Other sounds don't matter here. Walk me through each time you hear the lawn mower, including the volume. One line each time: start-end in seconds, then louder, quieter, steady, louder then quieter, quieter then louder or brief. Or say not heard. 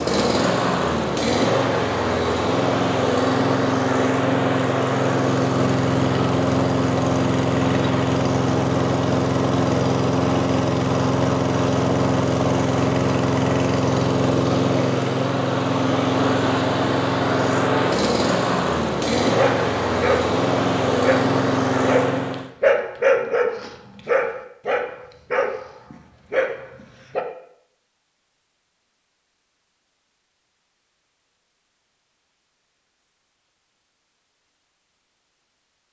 0.0-22.5 steady.